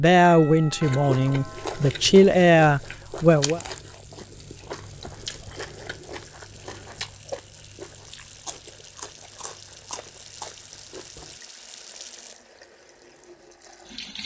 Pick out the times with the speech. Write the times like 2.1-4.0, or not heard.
0.0-3.6.